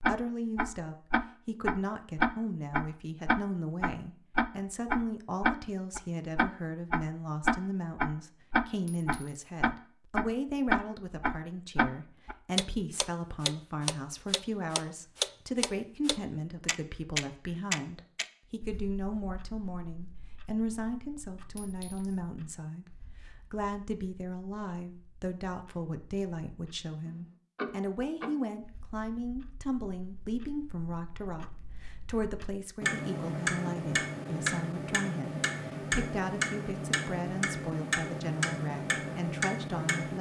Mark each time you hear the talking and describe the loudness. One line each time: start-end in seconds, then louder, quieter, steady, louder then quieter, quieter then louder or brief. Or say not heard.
0.0-40.1 steady.